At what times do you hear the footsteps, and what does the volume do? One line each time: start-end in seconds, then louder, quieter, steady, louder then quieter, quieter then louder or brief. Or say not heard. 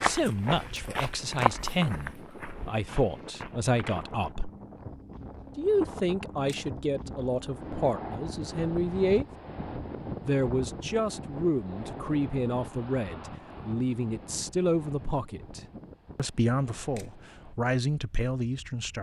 0.0-4.2 louder then quieter.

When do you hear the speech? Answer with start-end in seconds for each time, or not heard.
0.0-4.5, 5.5-9.2, 10.2-18.9.